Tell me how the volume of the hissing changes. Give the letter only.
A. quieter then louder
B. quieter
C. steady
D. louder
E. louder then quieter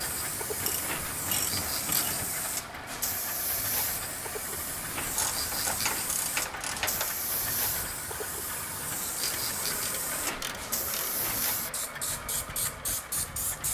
C.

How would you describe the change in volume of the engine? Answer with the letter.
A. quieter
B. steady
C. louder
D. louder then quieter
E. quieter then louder
B.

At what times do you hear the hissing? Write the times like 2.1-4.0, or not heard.
0.0-13.6.